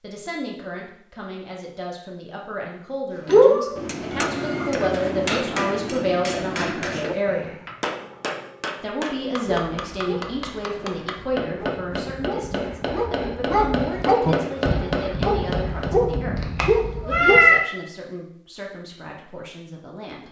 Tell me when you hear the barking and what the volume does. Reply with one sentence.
You can hear the barking from 9.4 to 17.5 s, getting louder.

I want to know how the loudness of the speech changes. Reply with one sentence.
The volume of the speech goes up, then down.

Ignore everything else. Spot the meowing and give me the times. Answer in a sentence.
The meowing can be heard from 3.2 to 4.7 s and from 16.4 to 17.6 s.